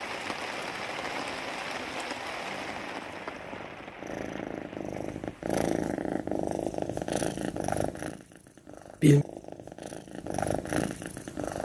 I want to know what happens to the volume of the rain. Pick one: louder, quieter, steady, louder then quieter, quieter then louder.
quieter.